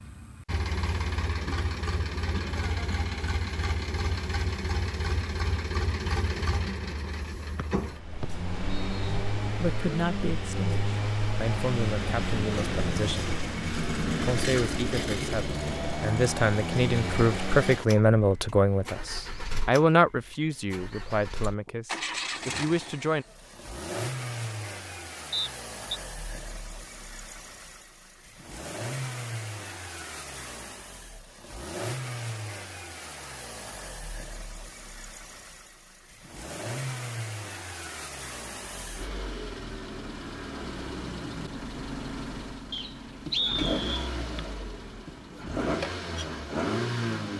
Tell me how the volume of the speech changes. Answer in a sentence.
The loudness of the speech goes up, then down.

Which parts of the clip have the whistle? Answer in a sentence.
The whistle can be heard from 7.5 to 9.2 s, from 25.3 to 26.0 s and from 42.7 to 44.1 s.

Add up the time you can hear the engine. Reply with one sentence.
You can hear the engine for 47 seconds altogether.